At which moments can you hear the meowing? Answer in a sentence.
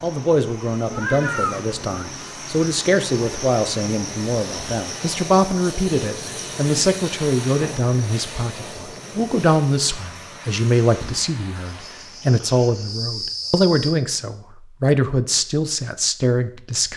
The meowing can be heard from 0.9 to 2.0 s.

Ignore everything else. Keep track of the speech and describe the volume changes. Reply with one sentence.
The volume of the speech stays about the same.